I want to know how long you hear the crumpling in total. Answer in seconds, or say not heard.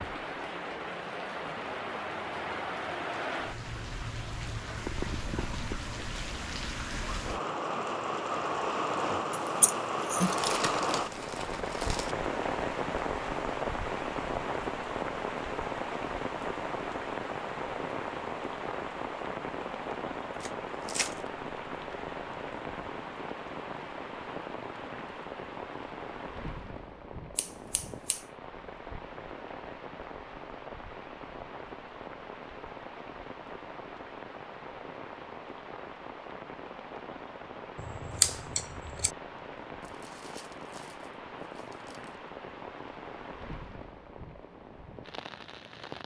5 s.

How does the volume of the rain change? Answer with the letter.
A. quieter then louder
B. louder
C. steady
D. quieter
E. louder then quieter
D.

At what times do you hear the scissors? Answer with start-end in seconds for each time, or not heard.
9.3-10.4, 27.4-28.2, 37.8-39.1.